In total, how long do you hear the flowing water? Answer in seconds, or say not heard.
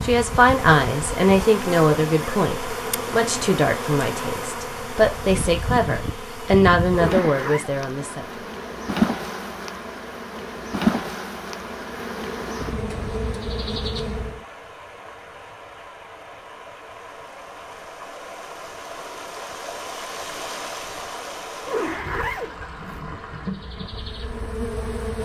17 s.